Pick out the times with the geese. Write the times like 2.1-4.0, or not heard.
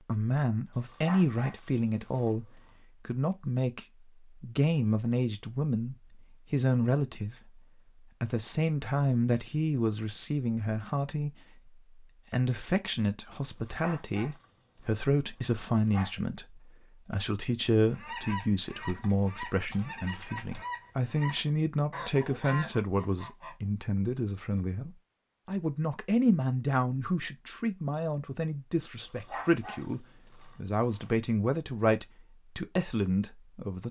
17.9-23.6.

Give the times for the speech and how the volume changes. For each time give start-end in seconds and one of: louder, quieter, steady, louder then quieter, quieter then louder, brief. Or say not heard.
0.1-33.8 steady.